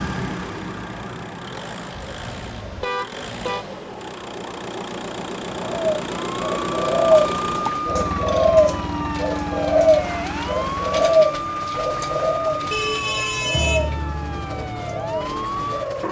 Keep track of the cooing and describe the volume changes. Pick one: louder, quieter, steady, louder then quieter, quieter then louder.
quieter.